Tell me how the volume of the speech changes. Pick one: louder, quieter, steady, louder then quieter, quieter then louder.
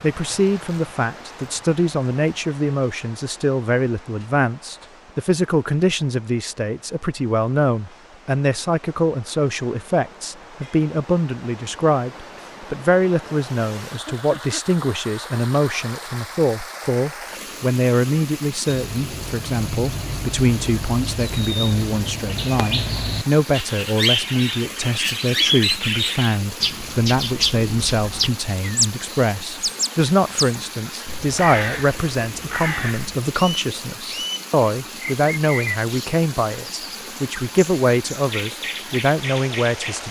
steady.